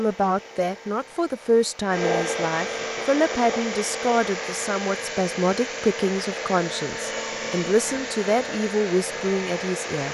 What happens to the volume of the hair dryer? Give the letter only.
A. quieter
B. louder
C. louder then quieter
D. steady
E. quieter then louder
D.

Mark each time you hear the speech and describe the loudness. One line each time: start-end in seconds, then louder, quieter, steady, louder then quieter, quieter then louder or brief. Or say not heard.
0.0-10.0 steady.